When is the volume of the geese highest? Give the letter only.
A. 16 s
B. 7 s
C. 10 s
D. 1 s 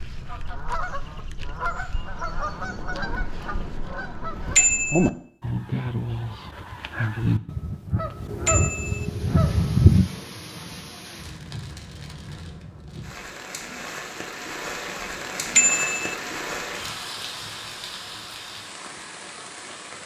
C.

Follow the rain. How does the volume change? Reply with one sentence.
The volume of the rain goes up, then down.